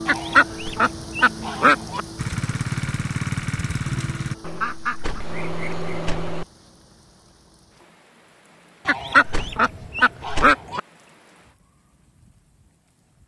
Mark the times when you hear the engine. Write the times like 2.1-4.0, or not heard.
2.1-4.3.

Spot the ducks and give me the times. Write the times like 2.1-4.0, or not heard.
0.1-2.0, 4.4-6.5, 8.8-10.8.